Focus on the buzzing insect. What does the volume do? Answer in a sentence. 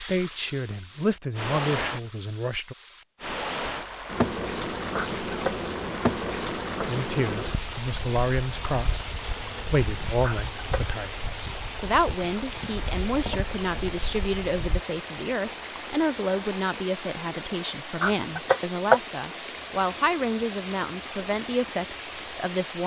The loudness of the buzzing insect goes down.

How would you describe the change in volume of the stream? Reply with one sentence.
The loudness of the stream stays about the same.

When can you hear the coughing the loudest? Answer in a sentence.
The loudest moment of the coughing is at 19 seconds.